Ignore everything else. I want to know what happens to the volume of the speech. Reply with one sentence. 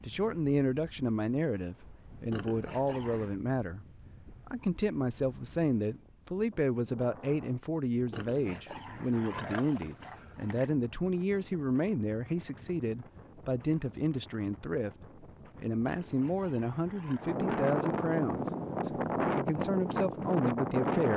The volume of the speech stays about the same.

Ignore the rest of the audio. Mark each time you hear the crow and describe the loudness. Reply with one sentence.
The crow can't be heard in this clip.